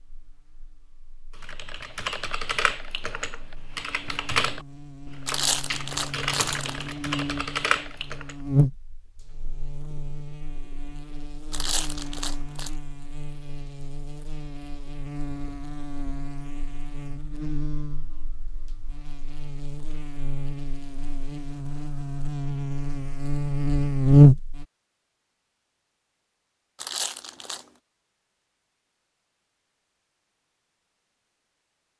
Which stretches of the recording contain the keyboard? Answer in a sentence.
You can hear the keyboard from 1.4 to 8.3 s.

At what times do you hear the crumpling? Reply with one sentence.
The crumpling can be heard from 5.2 to 7.0 s, from 11.5 to 12.7 s and from 26.8 to 27.6 s.